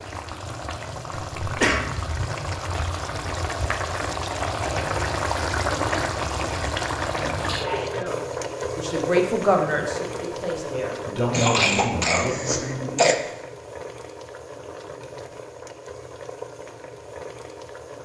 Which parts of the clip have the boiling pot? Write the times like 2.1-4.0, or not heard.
0.0-17.9.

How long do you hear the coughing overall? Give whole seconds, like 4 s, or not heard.
2 s.